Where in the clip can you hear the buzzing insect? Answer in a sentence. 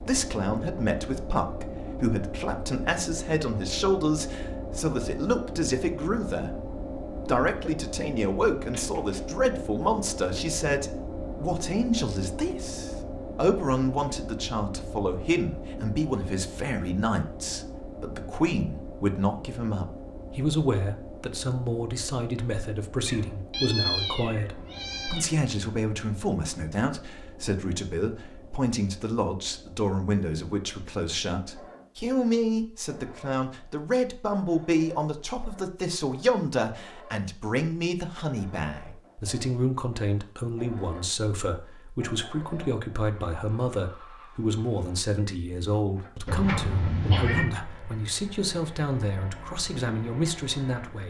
The buzzing insect can't be heard in this clip.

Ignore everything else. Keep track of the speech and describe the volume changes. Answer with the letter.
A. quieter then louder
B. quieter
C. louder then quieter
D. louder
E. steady
E.